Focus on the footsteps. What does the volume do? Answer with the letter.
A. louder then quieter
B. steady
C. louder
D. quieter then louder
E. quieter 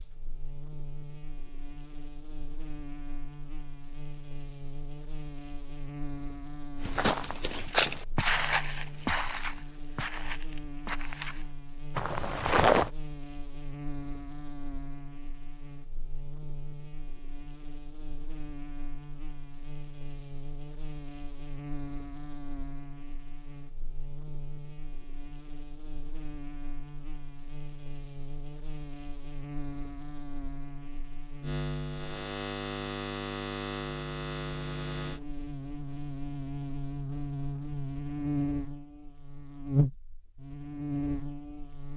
D.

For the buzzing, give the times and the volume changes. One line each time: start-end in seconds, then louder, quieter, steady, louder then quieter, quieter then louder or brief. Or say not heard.
0.0-41.9 louder.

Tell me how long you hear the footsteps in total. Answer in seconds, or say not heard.
6 s.